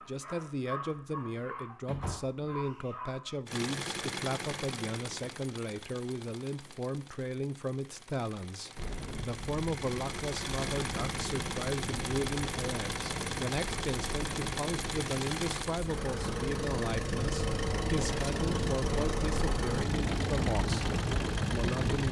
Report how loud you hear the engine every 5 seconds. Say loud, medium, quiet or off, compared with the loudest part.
loud, medium, loud, loud, loud.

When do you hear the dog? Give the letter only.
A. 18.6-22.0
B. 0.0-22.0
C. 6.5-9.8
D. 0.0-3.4
D.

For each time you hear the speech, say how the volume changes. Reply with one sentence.
The speech can be heard from 0.0 to 22.0 s, at a steady volume.